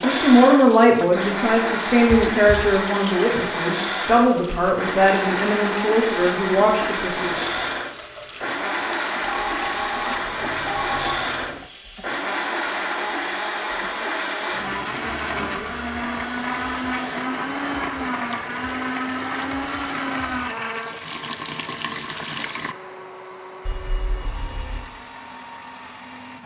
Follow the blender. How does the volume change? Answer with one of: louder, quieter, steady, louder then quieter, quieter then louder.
quieter.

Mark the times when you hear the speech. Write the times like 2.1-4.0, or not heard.
0.0-7.3.